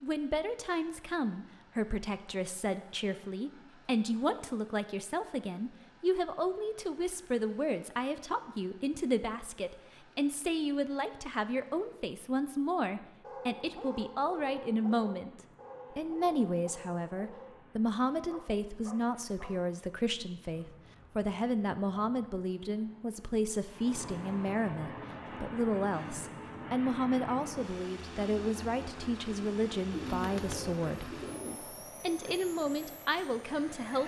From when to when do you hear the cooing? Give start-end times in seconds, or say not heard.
29.9-31.6.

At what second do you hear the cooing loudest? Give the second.
30 s.